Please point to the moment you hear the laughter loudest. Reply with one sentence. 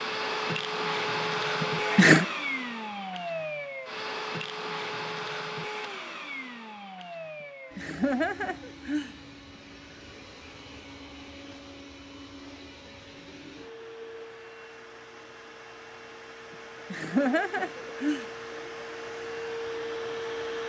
The loudest moment of the laughter is at 2 seconds.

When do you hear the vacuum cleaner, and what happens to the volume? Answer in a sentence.
You can hear the vacuum cleaner from 0.0 to 20.6 s, getting quieter then louder.